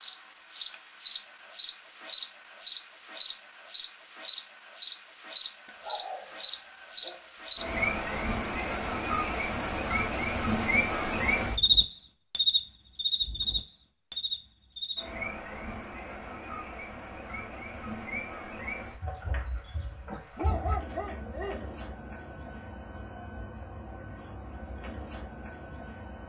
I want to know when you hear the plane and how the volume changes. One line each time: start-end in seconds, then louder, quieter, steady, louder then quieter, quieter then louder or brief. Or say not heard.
not heard.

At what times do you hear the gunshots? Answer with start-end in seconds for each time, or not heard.
not heard.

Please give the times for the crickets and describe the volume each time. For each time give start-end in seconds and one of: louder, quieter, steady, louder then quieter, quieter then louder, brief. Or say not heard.
0.0-26.2 quieter.